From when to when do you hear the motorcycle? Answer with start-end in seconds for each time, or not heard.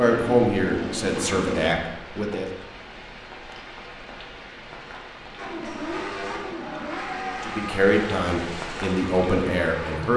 0.0-1.8, 5.3-10.1.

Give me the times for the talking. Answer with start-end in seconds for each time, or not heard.
0.0-2.5, 7.4-10.1.